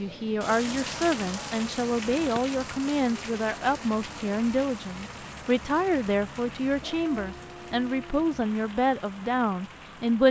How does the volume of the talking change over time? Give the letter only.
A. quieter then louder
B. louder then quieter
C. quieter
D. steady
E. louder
D.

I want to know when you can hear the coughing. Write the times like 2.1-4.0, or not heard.
not heard.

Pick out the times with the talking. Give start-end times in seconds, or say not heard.
0.0-10.2.